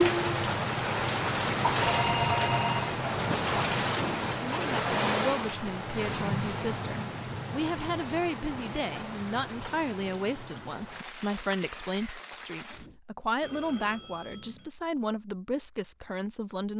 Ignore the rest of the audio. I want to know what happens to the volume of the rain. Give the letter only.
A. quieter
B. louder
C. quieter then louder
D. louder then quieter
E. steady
A.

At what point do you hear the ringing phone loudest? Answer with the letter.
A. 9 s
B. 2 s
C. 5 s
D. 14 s
B.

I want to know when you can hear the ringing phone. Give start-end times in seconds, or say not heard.
1.8-3.5, 13.4-14.8.